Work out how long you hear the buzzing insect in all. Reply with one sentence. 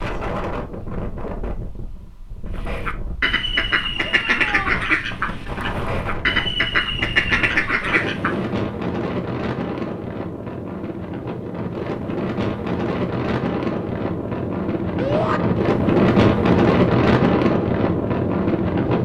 You can't hear the buzzing insect here.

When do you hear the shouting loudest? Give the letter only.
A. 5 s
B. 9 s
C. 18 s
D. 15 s
D.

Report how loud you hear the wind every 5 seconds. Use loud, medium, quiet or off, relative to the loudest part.
quiet, medium, medium, loud.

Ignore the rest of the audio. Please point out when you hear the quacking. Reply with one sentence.
The quacking can be heard from 2.5 to 8.4 s.